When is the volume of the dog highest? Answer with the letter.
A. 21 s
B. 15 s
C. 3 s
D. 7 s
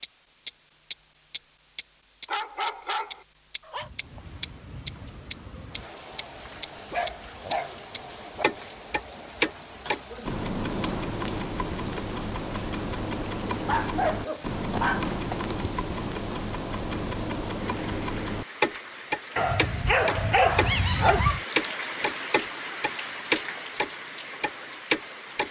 A.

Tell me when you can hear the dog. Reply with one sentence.
You can hear the dog from 2.2 to 3.9 s, from 6.5 to 8.4 s, from 13.7 to 15.6 s and from 19.4 to 21.4 s.